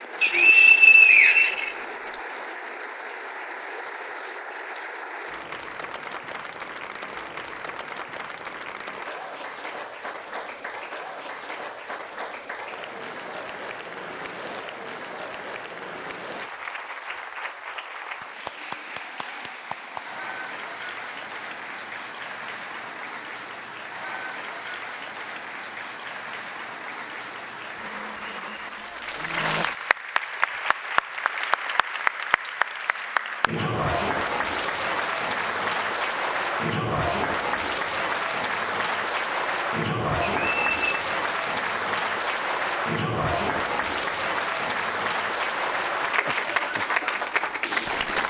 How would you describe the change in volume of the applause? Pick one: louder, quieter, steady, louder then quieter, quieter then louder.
louder.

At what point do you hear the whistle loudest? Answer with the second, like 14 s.
1 s.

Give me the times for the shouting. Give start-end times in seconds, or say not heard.
not heard.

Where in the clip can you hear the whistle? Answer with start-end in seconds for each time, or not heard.
0.2-2.1, 40.4-41.0.